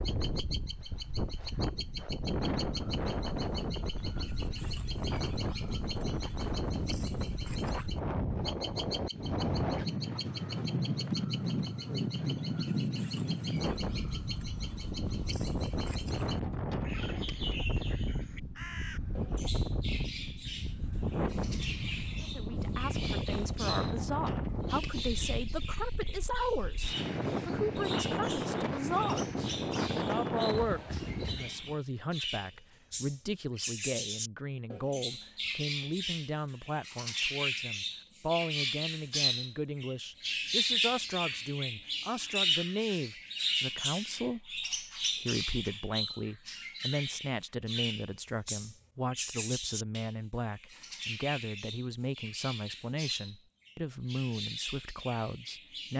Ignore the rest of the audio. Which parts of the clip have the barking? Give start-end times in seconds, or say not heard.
not heard.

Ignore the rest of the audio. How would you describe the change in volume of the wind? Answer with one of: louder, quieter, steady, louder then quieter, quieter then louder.
steady.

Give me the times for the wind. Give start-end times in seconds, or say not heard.
0.0-31.8.